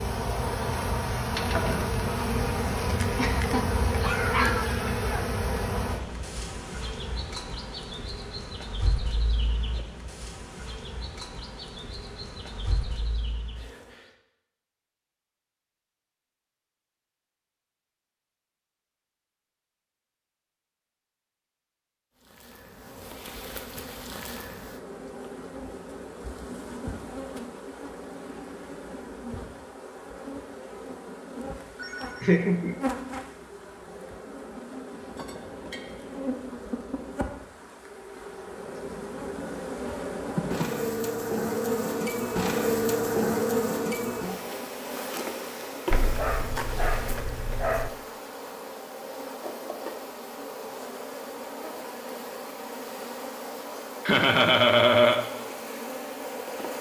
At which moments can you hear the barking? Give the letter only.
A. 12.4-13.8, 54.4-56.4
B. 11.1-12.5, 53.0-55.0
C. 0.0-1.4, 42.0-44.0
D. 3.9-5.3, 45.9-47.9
D.